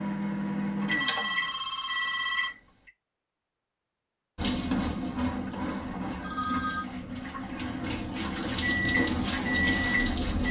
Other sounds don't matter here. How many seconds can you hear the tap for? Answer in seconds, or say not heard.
6 s.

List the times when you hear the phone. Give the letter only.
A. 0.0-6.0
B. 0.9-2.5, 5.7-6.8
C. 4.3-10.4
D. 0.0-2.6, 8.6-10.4
B.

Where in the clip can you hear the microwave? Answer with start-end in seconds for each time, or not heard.
0.0-2.6, 8.6-10.4.